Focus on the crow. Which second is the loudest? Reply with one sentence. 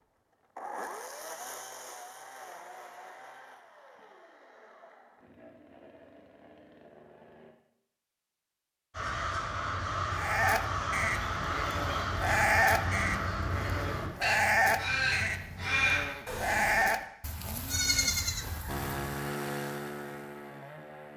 The volume of the crow peaks at 16 seconds.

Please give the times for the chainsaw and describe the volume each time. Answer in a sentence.
The chainsaw can be heard from 0.0 to 7.5 s, getting quieter; and briefly from 18.6 to 21.1 s.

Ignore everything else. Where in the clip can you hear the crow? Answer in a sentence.
The crow can be heard from 8.9 to 16.9 s.